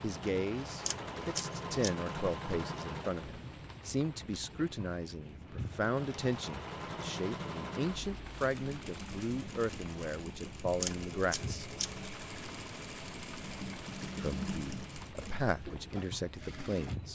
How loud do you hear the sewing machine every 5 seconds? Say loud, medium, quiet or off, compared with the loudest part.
loud, loud, loud, medium.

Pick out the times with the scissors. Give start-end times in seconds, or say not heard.
0.8-1.9, 10.8-12.0.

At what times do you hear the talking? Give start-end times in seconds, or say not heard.
0.0-11.7, 14.2-17.1.